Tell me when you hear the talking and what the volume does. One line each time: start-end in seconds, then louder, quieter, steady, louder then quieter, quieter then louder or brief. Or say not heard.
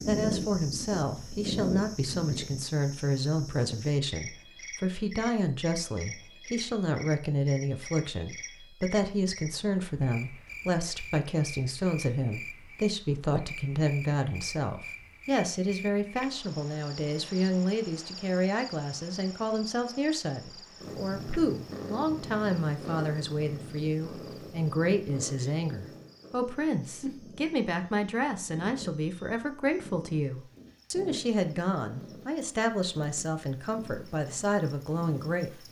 0.1-35.5 steady.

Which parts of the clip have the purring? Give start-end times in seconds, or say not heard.
0.0-2.4, 20.8-35.6.